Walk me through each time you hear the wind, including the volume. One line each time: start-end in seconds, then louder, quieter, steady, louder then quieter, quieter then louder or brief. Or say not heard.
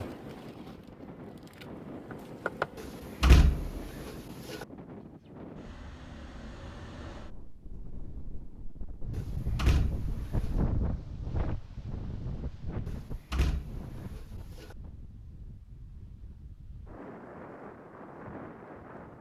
0.0-19.1 louder then quieter.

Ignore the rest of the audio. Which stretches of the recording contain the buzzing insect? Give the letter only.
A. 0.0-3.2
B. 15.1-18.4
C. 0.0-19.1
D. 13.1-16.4
A.